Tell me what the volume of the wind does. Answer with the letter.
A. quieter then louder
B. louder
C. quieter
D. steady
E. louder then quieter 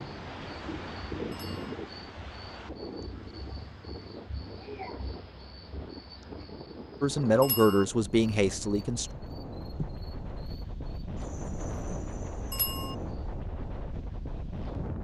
A.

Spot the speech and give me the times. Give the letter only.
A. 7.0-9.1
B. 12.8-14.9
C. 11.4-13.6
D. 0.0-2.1
A.